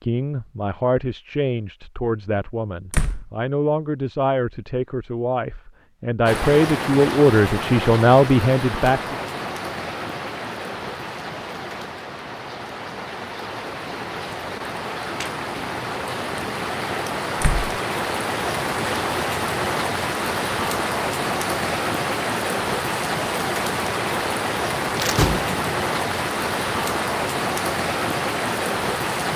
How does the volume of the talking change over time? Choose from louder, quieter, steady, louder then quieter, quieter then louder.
louder.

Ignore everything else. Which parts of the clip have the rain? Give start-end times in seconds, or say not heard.
6.2-29.3.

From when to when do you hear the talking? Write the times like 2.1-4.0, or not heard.
0.0-9.2.